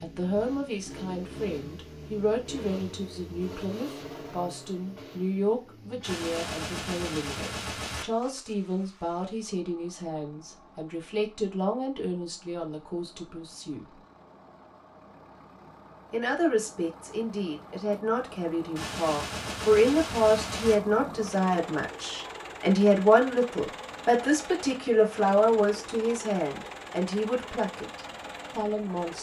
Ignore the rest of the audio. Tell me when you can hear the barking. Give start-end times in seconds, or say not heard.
not heard.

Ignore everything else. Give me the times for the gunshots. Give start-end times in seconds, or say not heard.
6.0-8.1, 18.8-20.8.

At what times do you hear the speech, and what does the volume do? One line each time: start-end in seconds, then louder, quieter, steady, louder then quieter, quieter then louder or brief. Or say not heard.
0.0-14.0 steady
16.1-29.1 louder then quieter.